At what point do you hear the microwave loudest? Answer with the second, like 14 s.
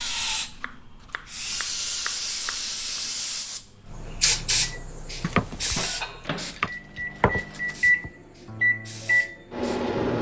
8 s.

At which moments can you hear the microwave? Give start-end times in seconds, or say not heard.
3.5-10.1.